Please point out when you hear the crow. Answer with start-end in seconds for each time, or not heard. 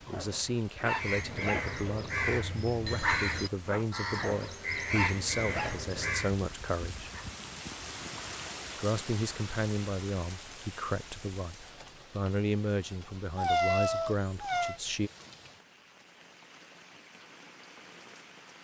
0.9-6.4.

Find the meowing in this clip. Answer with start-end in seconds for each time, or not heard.
13.3-14.8.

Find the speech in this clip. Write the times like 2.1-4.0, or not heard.
0.1-7.1, 8.8-15.1.